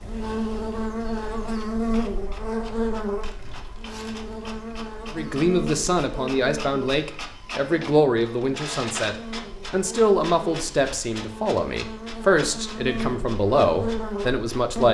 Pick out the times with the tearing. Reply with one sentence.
The tearing can be heard from 3.2 to 4.3 s.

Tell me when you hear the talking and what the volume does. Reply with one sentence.
The talking can be heard from 5.2 to 14.8 s, at a steady volume.